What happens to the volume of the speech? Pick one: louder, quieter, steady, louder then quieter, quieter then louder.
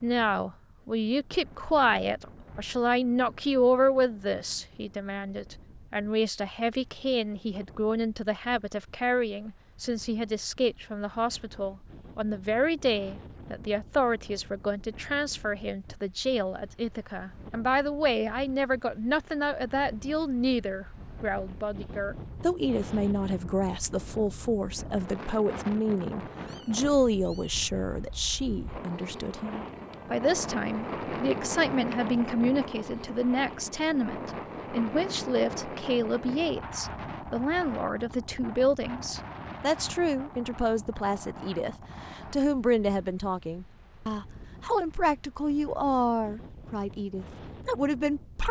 steady.